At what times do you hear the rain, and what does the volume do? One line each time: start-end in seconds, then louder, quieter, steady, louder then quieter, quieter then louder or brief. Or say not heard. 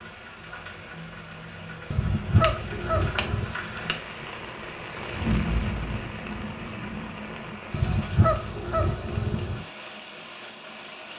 0.0-11.1 louder then quieter.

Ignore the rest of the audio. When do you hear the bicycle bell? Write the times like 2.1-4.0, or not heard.
2.4-4.0.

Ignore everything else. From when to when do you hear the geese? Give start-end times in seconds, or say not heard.
1.9-3.5, 7.7-9.7.